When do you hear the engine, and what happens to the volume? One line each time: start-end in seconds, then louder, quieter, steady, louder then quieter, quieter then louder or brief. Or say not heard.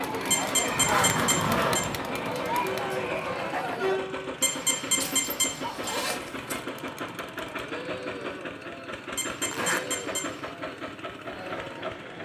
0.0-12.2 steady.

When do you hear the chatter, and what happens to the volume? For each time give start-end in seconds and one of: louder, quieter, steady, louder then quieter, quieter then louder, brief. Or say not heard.
0.0-12.2 quieter.